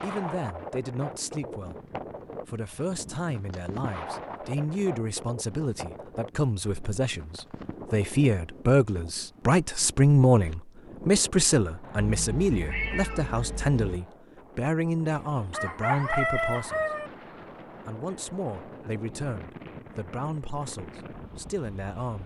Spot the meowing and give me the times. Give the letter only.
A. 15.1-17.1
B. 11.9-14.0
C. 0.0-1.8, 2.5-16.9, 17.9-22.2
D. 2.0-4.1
B.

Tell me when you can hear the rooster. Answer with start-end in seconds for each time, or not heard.
15.1-17.1.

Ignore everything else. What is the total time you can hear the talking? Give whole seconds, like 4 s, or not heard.
21 s.